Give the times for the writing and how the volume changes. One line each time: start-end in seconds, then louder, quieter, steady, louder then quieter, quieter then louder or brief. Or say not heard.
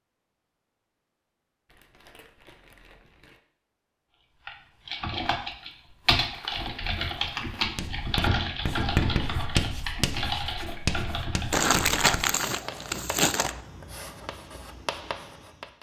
7.8-15.7 quieter.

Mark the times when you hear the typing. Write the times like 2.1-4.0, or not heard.
4.5-11.7.